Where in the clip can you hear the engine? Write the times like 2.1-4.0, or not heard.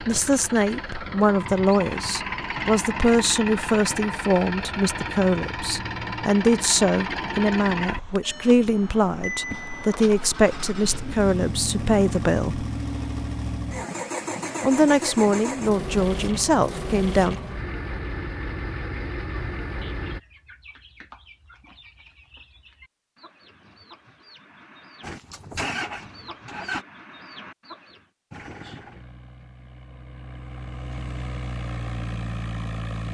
0.0-20.2, 25.0-26.9, 28.3-33.1.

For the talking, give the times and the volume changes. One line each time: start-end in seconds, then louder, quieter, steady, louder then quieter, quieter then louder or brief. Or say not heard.
0.0-12.7 steady
14.6-17.4 brief.